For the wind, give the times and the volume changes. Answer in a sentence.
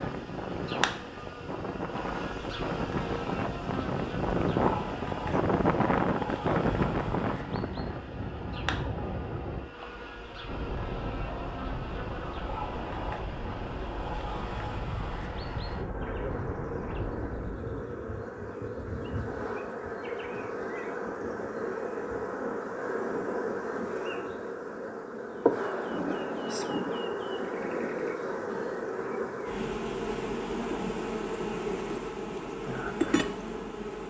You can hear the wind from 0.0 to 17.6 s, getting louder then quieter.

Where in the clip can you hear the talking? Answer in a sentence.
You can't hear the talking here.